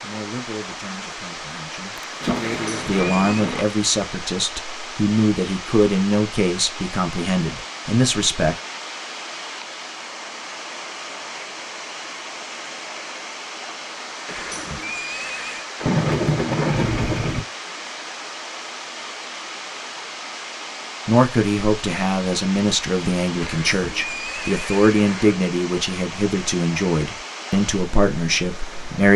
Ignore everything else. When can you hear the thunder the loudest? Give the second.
16 s.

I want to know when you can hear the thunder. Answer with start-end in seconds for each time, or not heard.
1.9-3.6, 15.8-17.4.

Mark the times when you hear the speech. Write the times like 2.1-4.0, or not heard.
0.0-8.6, 21.1-29.1.